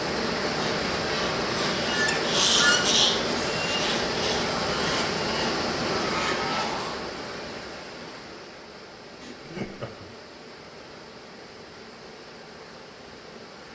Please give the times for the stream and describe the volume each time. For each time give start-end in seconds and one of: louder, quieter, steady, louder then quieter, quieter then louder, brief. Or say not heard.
0.0-13.7 quieter.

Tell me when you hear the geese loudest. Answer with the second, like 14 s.
3 s.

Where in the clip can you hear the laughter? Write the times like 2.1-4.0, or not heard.
9.2-10.1.